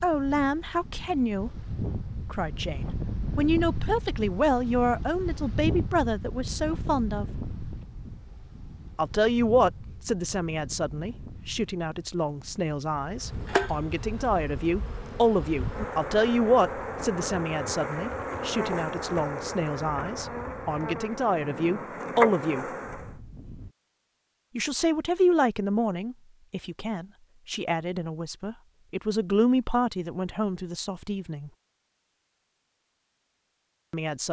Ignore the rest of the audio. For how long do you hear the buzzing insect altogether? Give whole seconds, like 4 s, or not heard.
10 s.